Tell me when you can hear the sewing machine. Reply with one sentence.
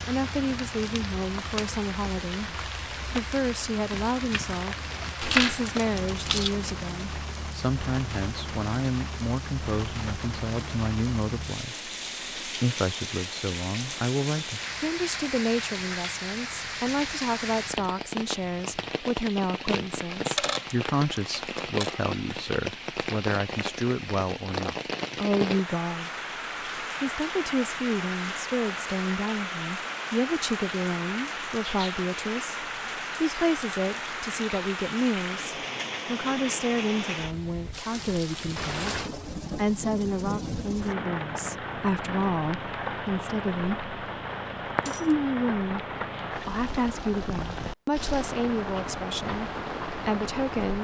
You can't hear the sewing machine here.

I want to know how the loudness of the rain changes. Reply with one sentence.
The volume of the rain stays about the same.